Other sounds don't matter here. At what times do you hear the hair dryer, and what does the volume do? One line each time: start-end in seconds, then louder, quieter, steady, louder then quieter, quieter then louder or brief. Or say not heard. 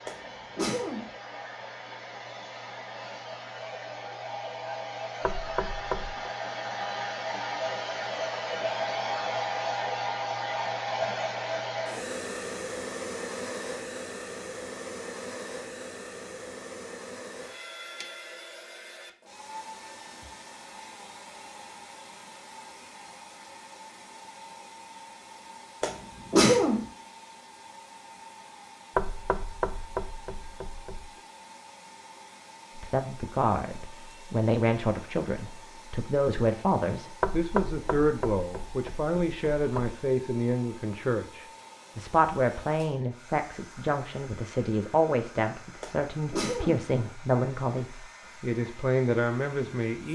0.0-50.0 quieter.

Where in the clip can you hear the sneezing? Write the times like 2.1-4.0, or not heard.
0.1-1.1, 25.8-26.9, 45.8-46.9.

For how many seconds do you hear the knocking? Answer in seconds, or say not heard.
6 s.